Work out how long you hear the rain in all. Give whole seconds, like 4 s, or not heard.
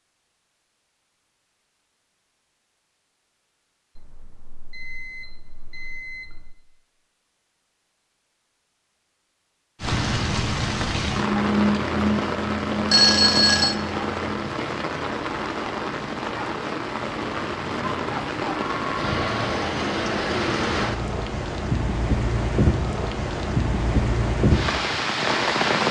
16 s.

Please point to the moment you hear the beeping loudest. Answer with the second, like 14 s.
13 s.